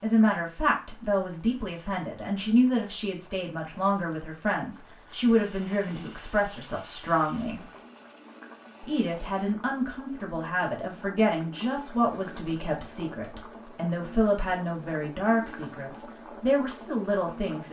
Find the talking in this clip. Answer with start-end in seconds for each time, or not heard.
0.0-7.6, 8.8-17.6.